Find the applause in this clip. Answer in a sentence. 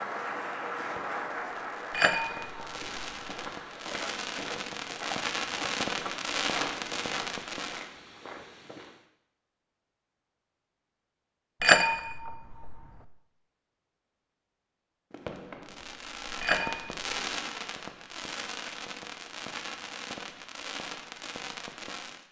The applause can be heard from 0.0 to 3.9 s.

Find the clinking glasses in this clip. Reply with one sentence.
You can hear the clinking glasses from 1.9 to 3.3 s, from 11.6 to 12.9 s and from 16.4 to 16.9 s.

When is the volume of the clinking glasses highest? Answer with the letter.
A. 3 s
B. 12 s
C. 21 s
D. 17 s
B.